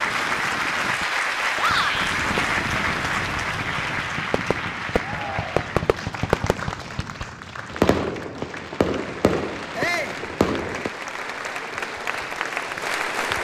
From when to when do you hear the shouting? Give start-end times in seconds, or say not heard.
1.6-2.1, 5.0-5.7, 9.8-10.2.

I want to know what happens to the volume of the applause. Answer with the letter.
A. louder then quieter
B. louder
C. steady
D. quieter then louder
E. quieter
D.